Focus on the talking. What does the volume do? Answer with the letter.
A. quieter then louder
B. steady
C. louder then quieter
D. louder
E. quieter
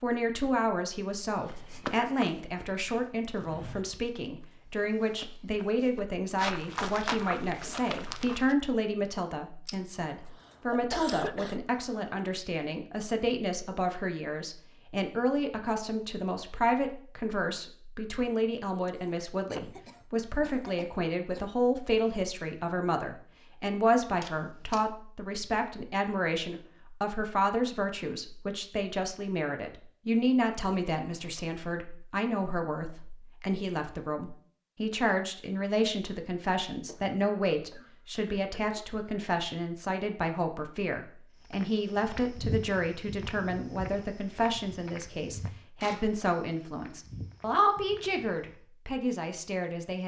B.